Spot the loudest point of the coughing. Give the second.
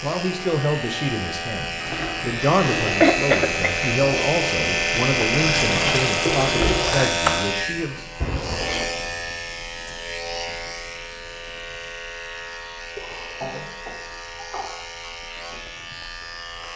3 s.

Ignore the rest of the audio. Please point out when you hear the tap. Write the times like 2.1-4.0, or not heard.
1.8-7.1.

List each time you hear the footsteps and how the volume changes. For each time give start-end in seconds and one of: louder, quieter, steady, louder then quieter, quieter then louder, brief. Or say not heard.
not heard.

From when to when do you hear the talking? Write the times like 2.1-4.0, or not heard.
0.0-8.1.